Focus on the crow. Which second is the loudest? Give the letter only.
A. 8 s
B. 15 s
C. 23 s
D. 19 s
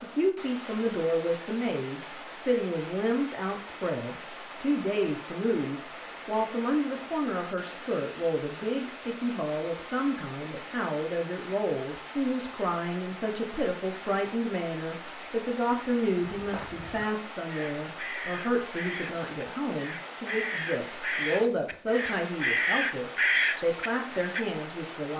C.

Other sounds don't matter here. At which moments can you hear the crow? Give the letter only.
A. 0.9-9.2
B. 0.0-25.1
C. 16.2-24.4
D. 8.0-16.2
C.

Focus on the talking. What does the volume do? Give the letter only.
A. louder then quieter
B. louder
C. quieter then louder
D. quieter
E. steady
E.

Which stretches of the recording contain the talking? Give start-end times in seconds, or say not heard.
0.0-25.1.